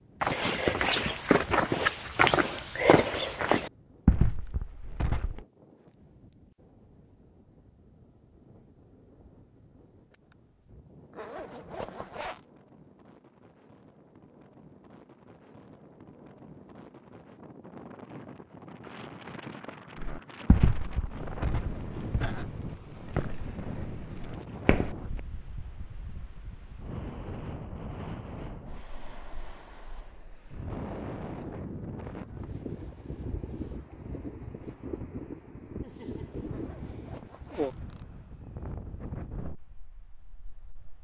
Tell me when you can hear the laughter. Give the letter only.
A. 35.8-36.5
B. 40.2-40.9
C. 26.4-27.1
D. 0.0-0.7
A.